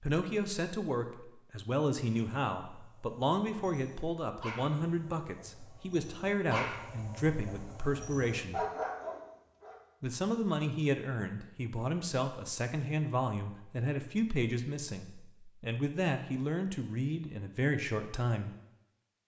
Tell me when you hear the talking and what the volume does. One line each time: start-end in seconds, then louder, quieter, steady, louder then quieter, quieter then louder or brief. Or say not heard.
0.0-8.7 steady
10.0-18.5 steady.